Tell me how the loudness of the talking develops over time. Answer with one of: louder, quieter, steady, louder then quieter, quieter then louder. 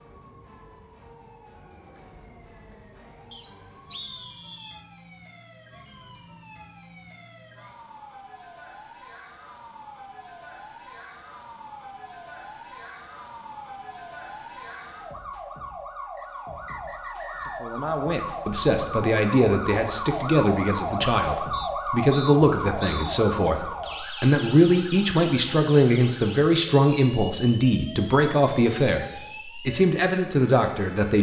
steady.